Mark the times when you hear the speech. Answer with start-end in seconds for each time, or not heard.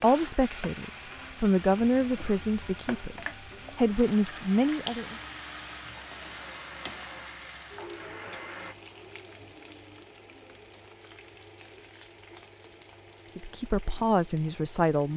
0.0-5.2, 13.3-15.1.